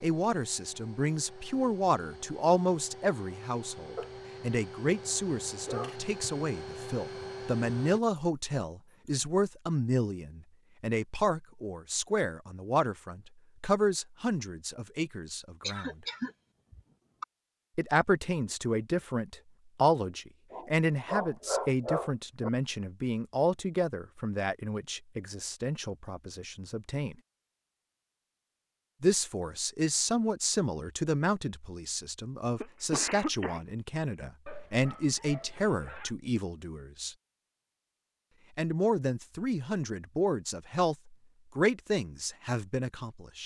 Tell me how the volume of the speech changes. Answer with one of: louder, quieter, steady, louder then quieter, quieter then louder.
steady.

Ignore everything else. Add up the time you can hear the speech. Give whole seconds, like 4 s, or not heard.
38 s.